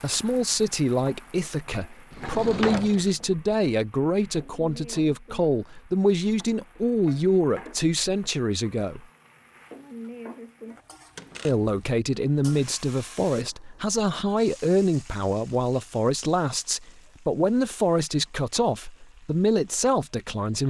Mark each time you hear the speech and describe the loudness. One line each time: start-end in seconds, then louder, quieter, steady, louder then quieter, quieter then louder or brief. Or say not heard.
0.0-9.1 steady
11.4-20.6 steady.